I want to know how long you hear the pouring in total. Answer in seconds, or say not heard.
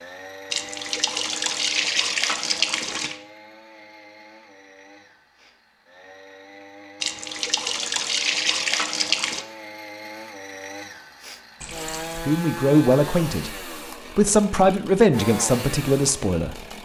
6 s.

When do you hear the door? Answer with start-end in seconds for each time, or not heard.
not heard.